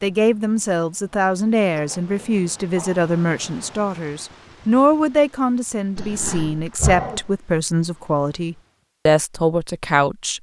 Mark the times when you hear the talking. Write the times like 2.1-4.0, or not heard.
0.0-10.3.